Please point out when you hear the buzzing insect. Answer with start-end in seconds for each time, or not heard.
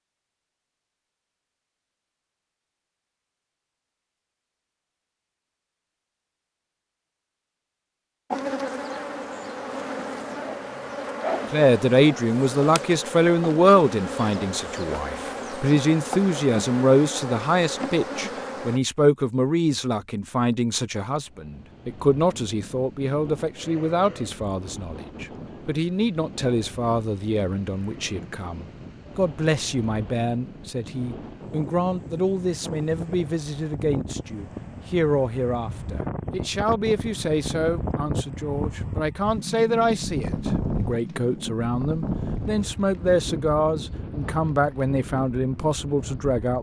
8.3-18.8.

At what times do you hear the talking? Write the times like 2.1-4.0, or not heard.
11.5-46.5.